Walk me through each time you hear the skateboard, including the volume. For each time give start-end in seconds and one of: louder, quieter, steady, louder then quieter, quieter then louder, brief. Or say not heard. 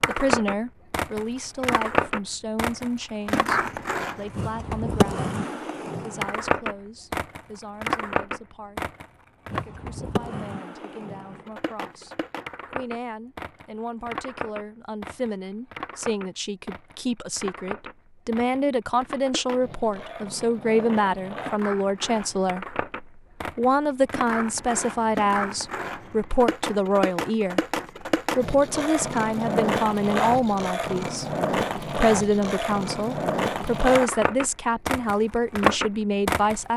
0.0-36.6 quieter then louder.